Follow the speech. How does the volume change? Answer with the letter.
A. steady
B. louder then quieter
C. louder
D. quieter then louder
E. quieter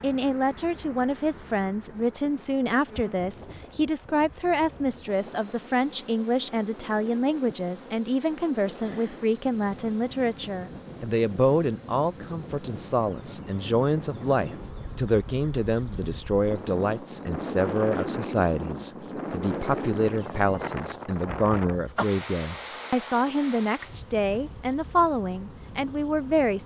A.